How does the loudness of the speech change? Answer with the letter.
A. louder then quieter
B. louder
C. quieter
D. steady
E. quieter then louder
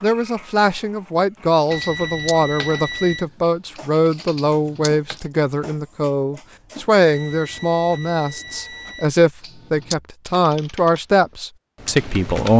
D.